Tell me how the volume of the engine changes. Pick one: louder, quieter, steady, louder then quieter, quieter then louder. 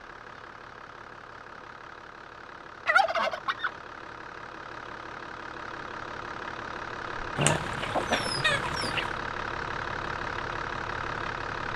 louder.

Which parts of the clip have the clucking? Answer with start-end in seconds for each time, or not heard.
2.9-3.7, 7.3-9.1.